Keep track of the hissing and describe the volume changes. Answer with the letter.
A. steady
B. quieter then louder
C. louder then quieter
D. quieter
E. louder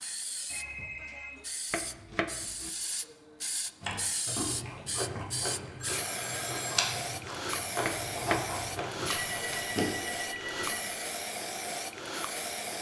E.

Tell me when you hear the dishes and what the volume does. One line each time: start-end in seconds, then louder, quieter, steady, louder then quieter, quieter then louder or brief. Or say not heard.
not heard.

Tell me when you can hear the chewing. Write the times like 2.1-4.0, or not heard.
3.8-9.8.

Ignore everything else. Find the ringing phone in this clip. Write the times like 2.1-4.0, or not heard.
0.5-1.4, 5.8-6.8, 9.2-10.9.